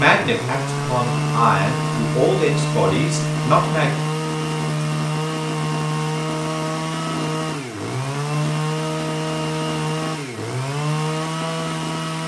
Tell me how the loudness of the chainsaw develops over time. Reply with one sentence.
The volume of the chainsaw stays about the same.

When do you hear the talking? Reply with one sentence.
You can hear the talking from 0.0 to 3.9 s.